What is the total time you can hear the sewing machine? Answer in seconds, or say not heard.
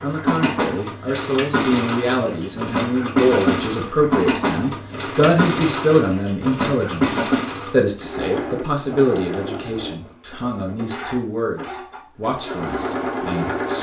14 s.